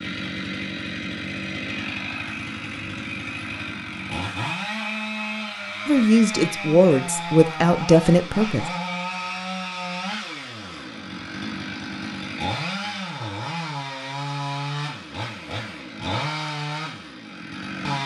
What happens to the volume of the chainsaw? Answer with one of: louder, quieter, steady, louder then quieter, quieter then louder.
steady.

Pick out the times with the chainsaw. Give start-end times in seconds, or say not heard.
0.0-18.0.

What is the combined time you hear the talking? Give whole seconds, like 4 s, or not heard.
3 s.